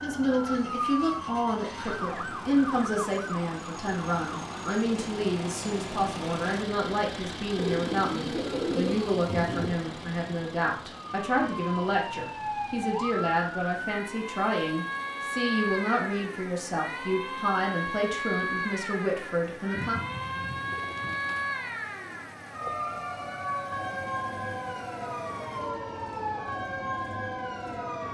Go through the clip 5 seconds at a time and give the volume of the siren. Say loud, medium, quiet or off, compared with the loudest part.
loud, medium, loud, loud, loud, loud.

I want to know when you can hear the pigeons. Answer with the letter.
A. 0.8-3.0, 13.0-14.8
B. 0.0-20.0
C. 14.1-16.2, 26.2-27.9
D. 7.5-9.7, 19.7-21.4
D.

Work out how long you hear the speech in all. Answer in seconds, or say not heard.
20 s.